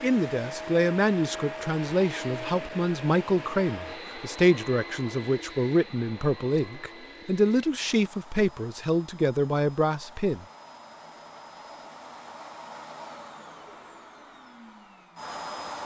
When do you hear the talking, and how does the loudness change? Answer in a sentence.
The talking can be heard from 0.0 to 10.4 s, at a steady volume.